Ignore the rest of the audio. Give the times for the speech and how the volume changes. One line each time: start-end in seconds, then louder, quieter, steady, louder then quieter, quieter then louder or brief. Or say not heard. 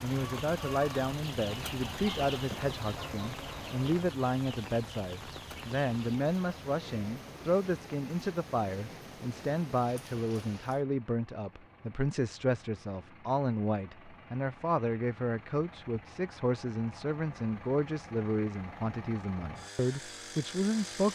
0.0-21.1 steady.